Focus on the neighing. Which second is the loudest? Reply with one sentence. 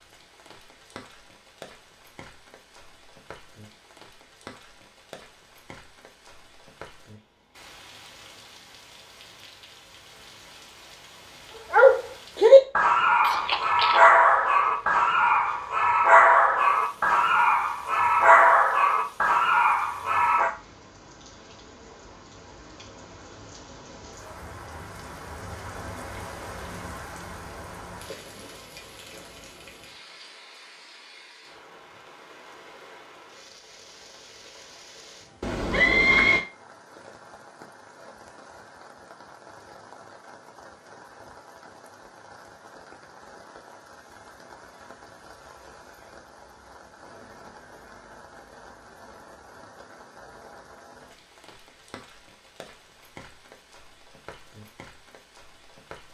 The volume of the neighing peaks at 36 seconds.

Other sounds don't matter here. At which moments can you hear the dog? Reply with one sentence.
The dog can be heard from 11.7 to 20.5 s.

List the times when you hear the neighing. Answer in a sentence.
You can hear the neighing from 13.2 to 14.1 s and from 35.4 to 36.4 s.